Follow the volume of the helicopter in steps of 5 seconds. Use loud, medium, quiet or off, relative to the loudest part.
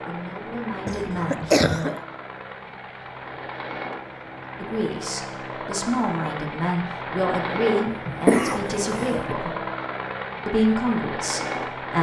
medium, loud, loud.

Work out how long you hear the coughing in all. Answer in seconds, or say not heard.
3 s.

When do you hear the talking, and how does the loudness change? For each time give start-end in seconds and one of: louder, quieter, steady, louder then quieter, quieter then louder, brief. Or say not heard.
0.1-1.9 brief
4.6-9.6 louder
10.4-11.9 brief.